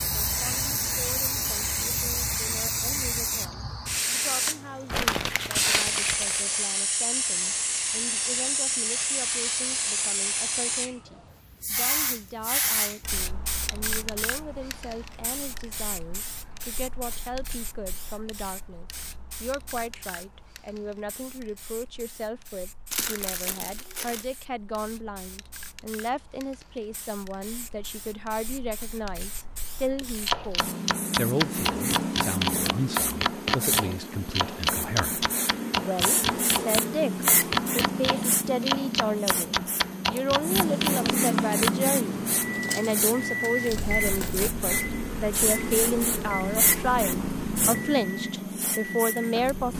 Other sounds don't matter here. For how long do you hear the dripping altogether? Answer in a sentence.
You can't hear the dripping here.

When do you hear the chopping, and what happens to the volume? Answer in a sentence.
The chopping can be heard from 30.2 to 41.8 s, at a steady volume.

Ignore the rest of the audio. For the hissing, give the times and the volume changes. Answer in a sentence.
The hissing can be heard from 0.0 to 49.7 s, getting quieter then louder.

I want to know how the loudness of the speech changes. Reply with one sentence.
The loudness of the speech goes up.